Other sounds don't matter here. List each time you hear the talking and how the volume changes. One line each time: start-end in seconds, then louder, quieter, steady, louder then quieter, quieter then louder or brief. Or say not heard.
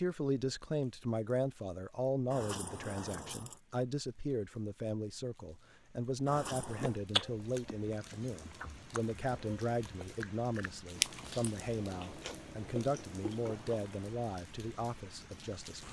0.0-15.8 steady.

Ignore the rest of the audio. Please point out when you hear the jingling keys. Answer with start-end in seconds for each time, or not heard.
2.3-3.6, 6.2-7.0, 13.4-14.1.